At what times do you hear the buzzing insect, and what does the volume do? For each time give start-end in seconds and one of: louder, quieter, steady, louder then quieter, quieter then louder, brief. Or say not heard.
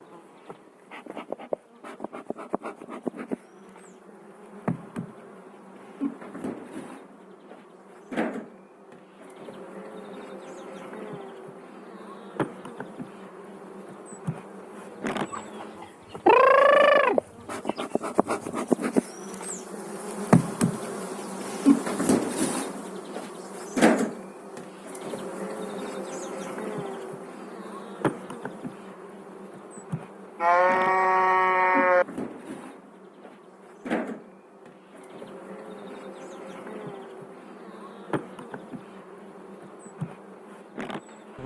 0.0-41.4 louder then quieter.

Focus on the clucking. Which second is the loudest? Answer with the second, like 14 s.
16 s.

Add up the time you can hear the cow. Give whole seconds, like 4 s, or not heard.
2 s.